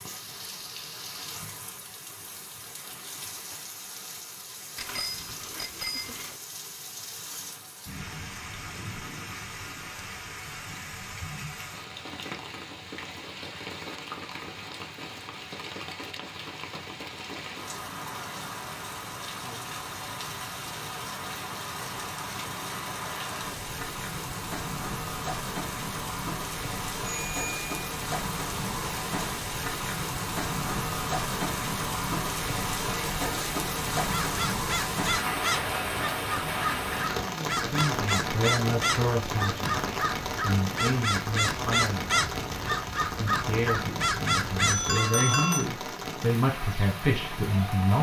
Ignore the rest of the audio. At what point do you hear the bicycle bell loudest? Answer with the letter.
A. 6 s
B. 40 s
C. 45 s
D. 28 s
C.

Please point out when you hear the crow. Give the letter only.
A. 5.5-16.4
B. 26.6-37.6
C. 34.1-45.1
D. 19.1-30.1
C.